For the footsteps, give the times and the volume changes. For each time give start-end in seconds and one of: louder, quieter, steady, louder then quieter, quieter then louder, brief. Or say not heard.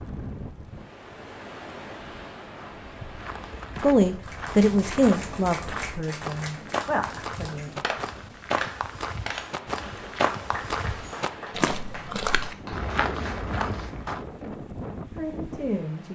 2.5-14.2 louder.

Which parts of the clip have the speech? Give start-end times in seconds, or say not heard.
3.8-7.8, 15.1-16.1.